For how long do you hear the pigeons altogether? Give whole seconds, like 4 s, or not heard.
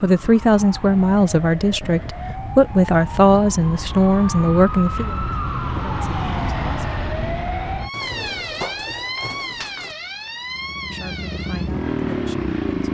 2 s.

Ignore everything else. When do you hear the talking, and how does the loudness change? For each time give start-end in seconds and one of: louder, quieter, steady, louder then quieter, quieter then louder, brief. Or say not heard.
0.0-7.0 quieter
10.9-12.8 brief.